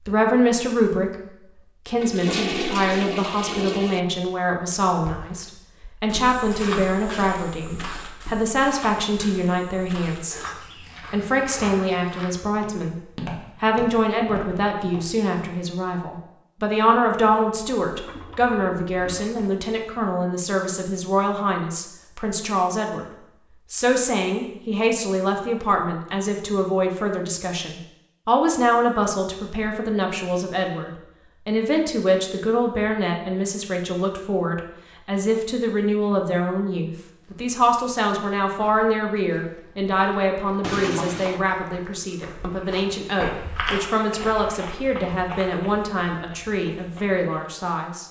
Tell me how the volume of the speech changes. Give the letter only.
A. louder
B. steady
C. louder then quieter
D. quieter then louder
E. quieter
B.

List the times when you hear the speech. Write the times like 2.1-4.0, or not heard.
0.0-48.0.